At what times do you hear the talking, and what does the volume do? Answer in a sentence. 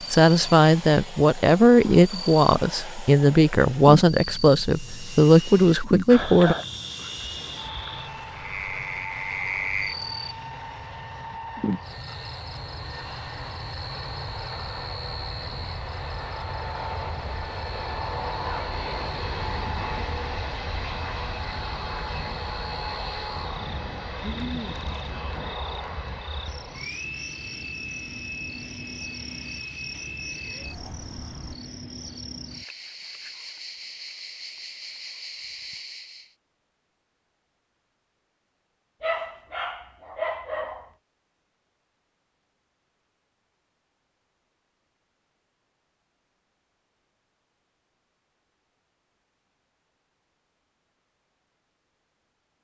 You can hear the talking from 0.1 to 6.5 s, at a steady volume.